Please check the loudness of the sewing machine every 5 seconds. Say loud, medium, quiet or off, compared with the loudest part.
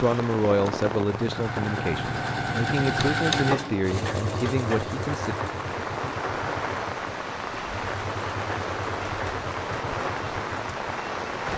loud, medium, medium.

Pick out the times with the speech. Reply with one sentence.
The speech can be heard from 0.0 to 5.3 s.